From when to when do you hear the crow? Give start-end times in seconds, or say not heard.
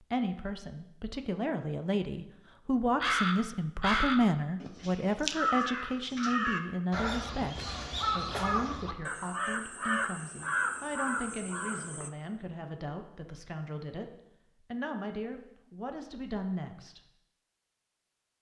2.8-12.1.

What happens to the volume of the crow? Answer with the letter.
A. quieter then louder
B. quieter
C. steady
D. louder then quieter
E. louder
C.